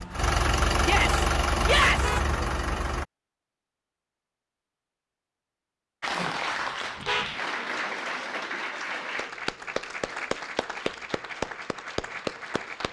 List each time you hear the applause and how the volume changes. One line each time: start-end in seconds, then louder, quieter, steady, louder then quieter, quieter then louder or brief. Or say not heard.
6.0-12.8 steady.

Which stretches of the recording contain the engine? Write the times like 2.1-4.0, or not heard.
0.0-3.0.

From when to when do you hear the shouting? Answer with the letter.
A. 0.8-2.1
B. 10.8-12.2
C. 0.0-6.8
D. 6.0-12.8
A.